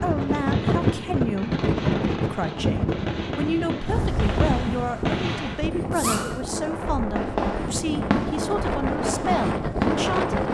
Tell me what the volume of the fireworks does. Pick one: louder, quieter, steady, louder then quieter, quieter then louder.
louder.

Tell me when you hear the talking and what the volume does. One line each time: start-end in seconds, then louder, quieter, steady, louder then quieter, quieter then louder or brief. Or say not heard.
0.0-10.4 steady.